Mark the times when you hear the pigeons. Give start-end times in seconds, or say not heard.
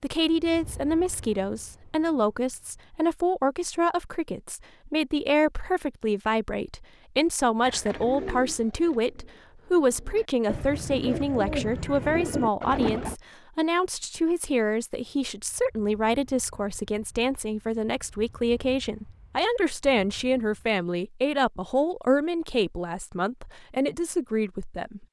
7.6-13.2.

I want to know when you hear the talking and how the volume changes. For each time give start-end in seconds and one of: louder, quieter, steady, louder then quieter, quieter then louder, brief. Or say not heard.
0.0-25.0 steady.